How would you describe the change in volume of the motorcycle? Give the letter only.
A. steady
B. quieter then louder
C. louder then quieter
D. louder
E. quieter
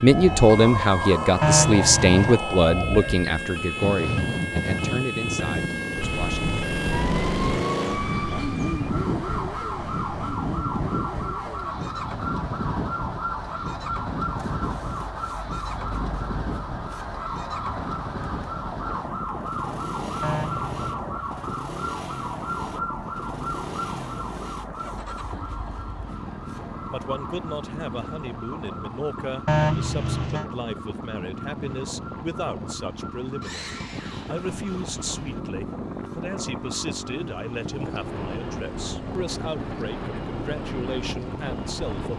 E.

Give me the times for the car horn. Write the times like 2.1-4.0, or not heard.
1.4-2.4, 20.2-21.1, 29.4-30.4.